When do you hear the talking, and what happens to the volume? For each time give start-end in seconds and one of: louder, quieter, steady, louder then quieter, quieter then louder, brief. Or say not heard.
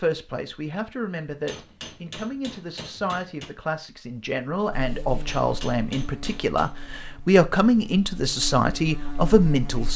0.0-9.9 louder.